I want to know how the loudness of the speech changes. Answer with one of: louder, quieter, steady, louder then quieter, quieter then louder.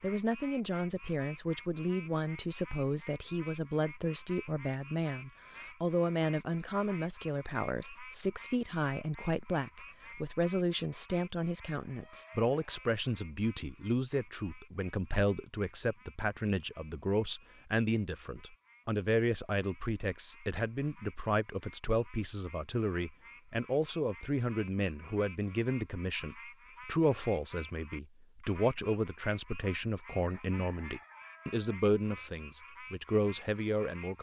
steady.